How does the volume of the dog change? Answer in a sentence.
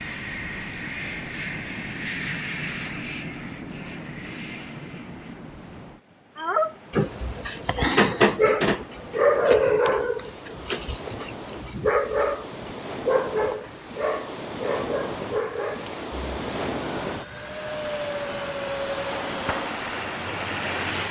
The loudness of the dog goes down.